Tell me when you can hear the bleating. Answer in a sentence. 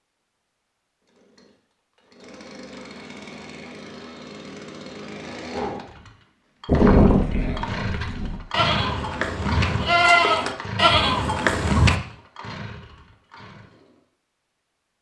The bleating can be heard from 6.7 to 11.9 s.